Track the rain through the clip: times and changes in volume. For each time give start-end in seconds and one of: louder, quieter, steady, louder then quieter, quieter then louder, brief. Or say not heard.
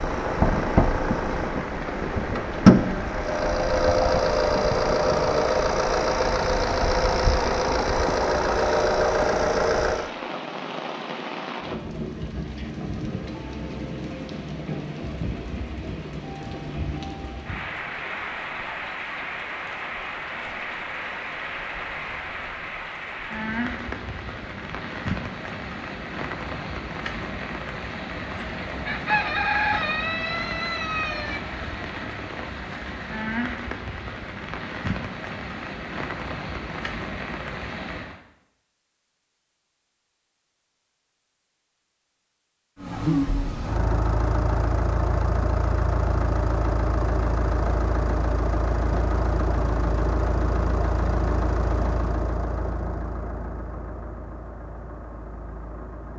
0.0-38.2 steady.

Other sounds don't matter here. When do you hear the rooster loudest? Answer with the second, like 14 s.
30 s.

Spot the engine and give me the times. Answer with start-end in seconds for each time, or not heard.
0.0-10.2, 42.8-56.1.